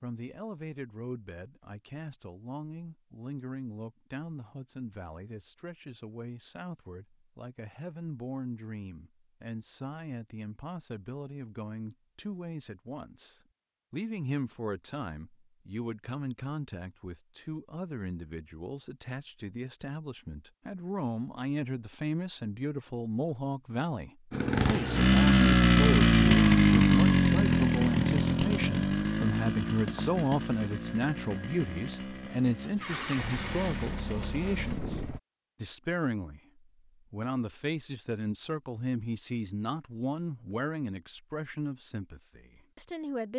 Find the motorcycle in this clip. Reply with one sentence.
The motorcycle can be heard from 24.3 to 35.2 s.